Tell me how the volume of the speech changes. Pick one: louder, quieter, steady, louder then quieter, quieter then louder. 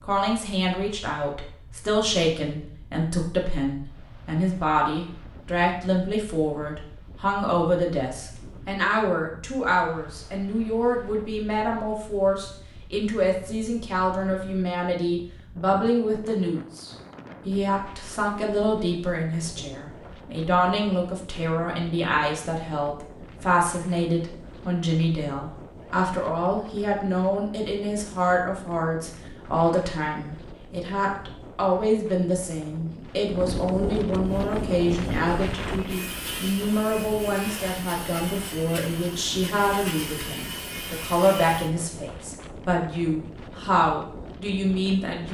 steady.